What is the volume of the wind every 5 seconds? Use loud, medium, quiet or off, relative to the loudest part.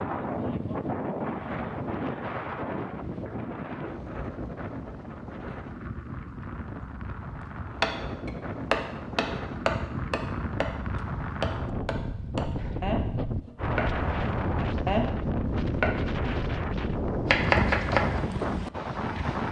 loud, medium, loud, loud.